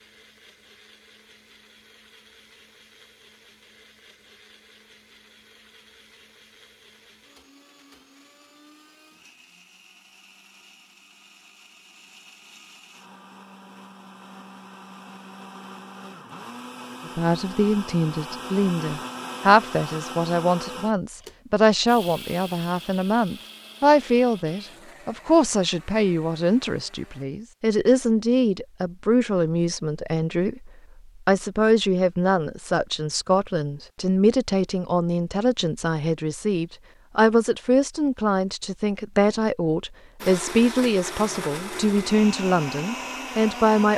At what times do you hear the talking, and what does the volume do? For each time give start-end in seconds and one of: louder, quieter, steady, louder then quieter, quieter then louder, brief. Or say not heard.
17.1-43.9 steady.